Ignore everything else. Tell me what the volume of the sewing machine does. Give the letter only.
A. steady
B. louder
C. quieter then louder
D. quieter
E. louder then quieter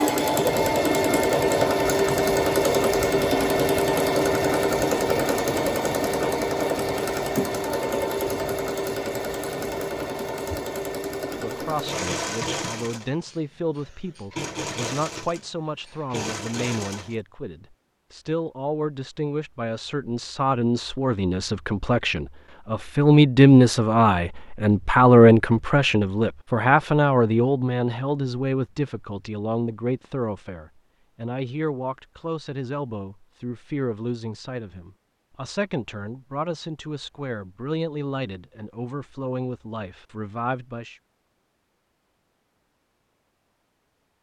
D.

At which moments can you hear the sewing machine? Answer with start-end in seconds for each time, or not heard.
0.0-17.1.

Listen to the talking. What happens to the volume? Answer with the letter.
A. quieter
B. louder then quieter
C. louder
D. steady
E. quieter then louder
B.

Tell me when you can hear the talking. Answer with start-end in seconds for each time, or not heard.
11.3-41.0.